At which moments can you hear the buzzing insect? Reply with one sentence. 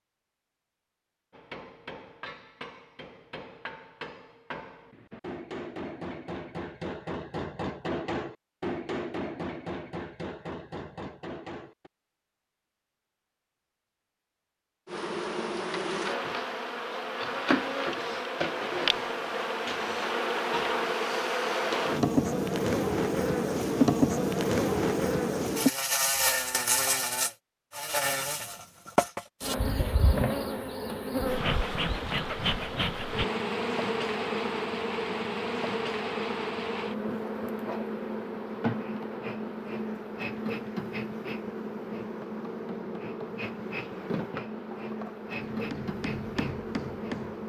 The buzzing insect can be heard from 14.8 to 47.4 s.